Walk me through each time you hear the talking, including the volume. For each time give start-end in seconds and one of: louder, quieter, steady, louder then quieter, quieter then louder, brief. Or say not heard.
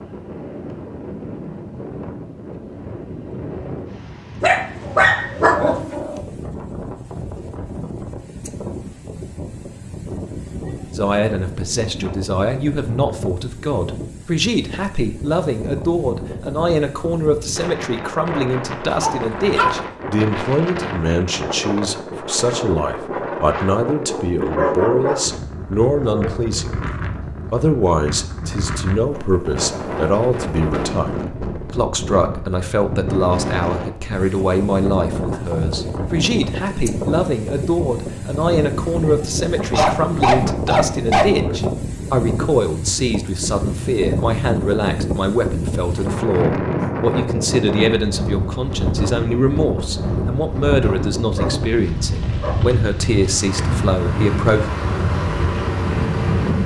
10.9-26.9 steady
27.5-54.6 steady.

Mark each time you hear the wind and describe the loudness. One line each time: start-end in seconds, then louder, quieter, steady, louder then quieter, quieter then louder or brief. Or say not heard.
0.0-56.6 louder.